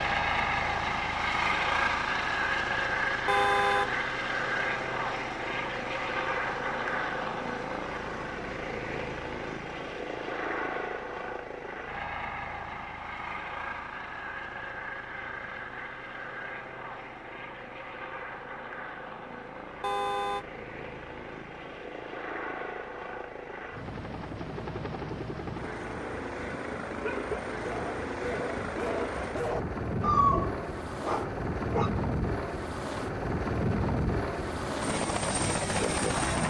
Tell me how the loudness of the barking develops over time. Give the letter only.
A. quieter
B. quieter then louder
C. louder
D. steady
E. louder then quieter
E.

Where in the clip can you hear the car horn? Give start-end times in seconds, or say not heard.
3.2-4.0, 19.8-20.4.